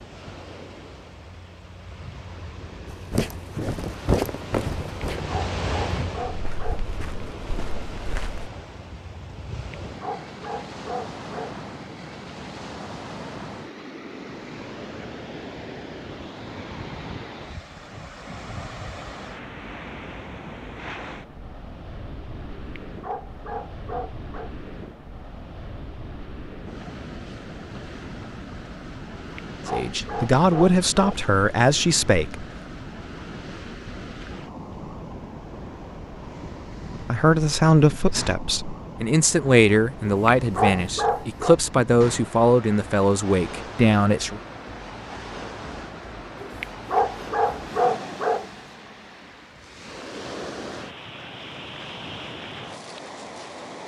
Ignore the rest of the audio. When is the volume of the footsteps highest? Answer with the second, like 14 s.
4 s.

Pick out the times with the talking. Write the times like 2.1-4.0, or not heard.
29.7-32.5, 37.0-44.4.